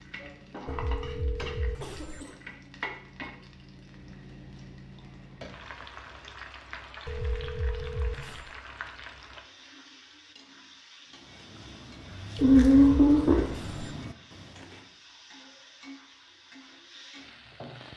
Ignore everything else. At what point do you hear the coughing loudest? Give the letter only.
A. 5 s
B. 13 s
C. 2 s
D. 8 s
B.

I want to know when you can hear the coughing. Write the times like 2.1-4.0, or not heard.
0.8-2.4, 12.4-13.6.